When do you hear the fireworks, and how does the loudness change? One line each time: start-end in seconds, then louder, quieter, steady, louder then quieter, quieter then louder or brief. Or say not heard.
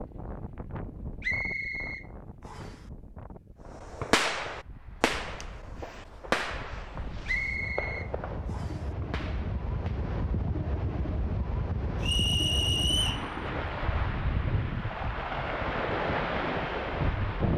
3.8-10.0 quieter.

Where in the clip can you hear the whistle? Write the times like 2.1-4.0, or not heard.
1.2-2.8, 7.2-8.8, 12.0-13.2.